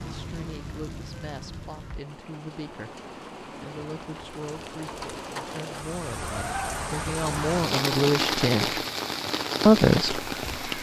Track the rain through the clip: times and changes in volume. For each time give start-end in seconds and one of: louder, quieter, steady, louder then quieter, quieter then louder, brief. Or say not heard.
0.0-10.7 louder.